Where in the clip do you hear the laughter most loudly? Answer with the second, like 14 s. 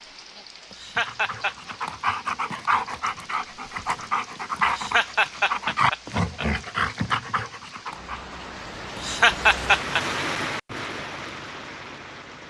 9 s.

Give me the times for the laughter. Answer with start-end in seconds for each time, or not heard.
0.7-1.7, 4.7-6.5, 8.9-10.0.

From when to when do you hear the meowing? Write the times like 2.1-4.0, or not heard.
not heard.